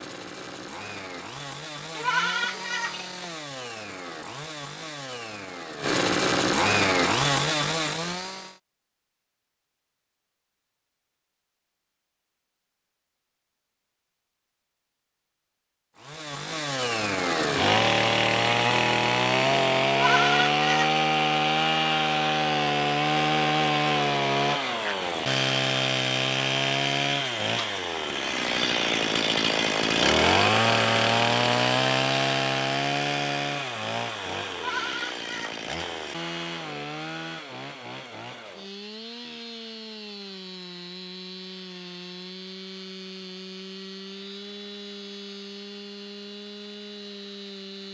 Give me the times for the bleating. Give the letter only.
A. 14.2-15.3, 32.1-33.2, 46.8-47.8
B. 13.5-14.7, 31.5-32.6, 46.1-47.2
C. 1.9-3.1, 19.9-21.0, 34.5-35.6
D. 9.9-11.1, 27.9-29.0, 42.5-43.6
C.